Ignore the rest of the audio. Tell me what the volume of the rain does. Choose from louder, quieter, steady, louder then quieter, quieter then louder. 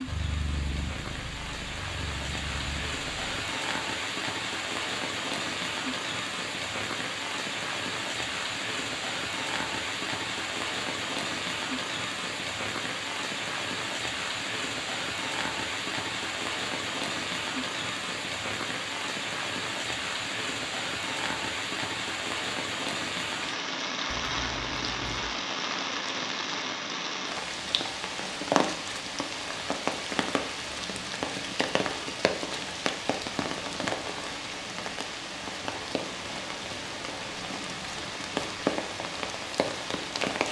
steady.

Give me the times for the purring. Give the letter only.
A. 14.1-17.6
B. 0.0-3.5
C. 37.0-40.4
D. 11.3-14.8
B.